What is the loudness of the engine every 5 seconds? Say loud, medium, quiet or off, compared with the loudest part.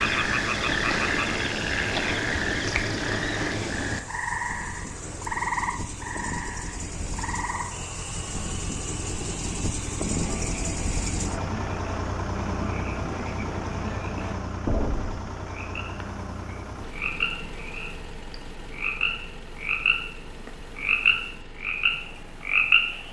medium, loud, loud, medium, quiet.